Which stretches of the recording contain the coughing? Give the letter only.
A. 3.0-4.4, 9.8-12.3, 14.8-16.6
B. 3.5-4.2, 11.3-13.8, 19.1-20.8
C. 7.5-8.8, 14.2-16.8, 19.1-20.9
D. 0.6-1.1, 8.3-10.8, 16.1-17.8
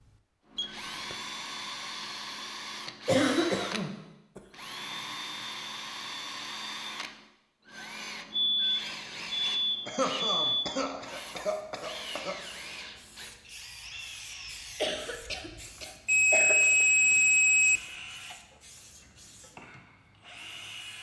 A.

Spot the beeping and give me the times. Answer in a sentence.
The beeping can be heard from 0.6 to 1.1 s, from 8.3 to 10.8 s and from 16.1 to 17.8 s.